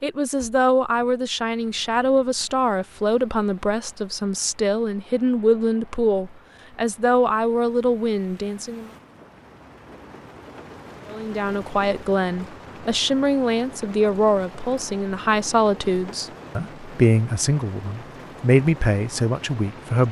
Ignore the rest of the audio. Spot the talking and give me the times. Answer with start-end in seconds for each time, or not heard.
0.0-8.9, 11.1-20.0.